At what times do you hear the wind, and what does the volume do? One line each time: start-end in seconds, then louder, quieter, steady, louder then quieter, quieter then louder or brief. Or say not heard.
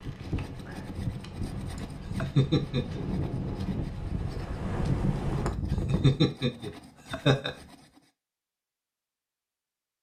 0.0-6.2 louder.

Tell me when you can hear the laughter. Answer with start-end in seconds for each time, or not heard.
1.8-3.0, 5.5-7.5.